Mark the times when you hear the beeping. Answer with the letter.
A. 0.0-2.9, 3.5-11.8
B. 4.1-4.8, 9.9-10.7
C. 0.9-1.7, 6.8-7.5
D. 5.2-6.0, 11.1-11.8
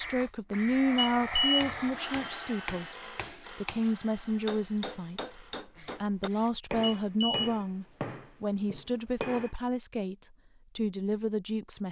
C.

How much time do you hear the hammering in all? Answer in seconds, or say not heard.
8 s.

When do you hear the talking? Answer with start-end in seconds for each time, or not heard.
0.0-2.9, 3.5-11.8.